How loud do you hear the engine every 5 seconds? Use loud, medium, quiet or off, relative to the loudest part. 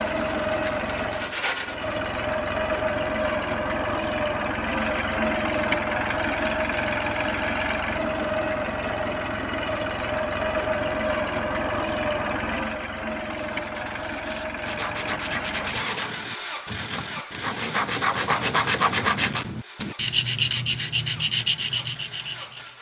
loud, loud, loud, medium, quiet.